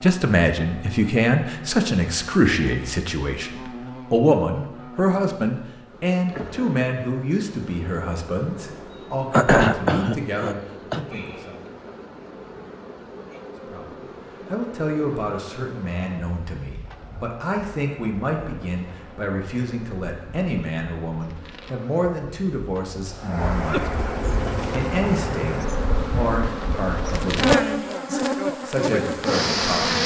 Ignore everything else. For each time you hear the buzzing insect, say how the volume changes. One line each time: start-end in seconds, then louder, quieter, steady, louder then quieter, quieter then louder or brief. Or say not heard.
0.0-30.0 louder.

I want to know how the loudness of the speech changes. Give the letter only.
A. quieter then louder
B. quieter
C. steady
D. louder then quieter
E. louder
B.